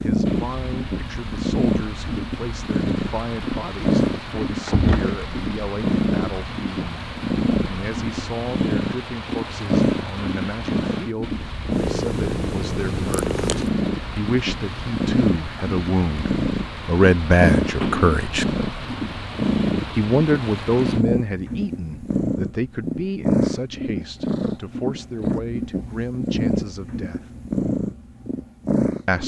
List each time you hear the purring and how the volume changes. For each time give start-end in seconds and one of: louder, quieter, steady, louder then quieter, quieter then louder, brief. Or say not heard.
0.0-29.2 steady.